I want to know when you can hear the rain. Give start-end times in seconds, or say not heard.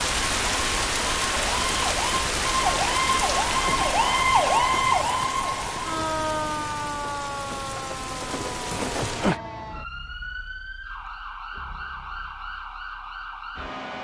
0.0-9.4.